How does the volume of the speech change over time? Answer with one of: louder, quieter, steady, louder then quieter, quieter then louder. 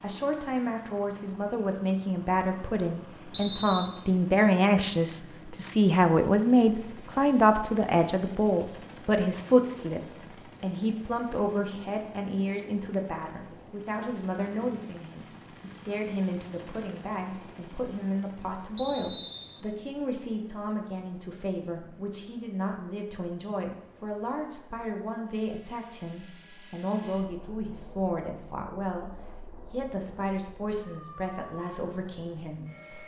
quieter.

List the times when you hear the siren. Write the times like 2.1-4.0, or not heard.
not heard.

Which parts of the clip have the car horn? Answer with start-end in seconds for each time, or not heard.
not heard.